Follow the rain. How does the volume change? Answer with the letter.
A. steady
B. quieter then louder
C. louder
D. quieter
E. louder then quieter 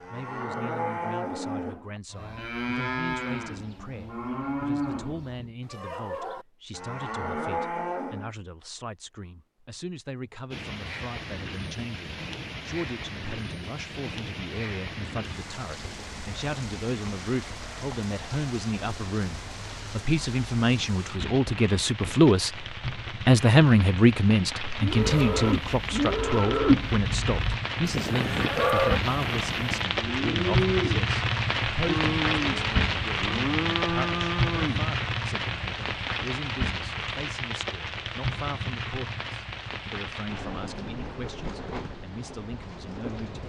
E.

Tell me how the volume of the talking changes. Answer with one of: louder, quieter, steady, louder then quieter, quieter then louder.
louder then quieter.